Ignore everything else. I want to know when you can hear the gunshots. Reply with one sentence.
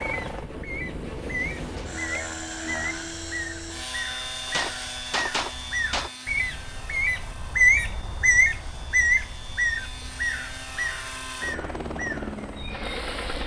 You can hear the gunshots from 4.5 to 6.1 s.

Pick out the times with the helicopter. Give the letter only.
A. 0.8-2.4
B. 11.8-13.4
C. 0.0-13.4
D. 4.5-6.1
C.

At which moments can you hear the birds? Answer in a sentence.
You can hear the birds from 0.0 to 13.4 s.